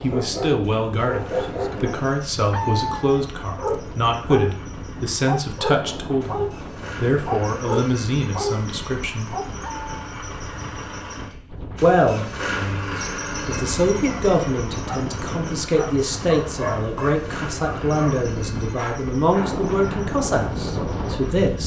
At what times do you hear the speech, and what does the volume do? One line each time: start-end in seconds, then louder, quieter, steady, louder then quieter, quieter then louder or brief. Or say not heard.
0.0-9.3 steady
11.8-21.6 steady.